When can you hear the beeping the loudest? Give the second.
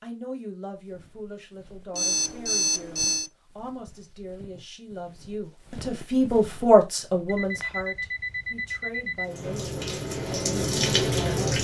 3 s.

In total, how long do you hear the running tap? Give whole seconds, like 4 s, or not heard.
2 s.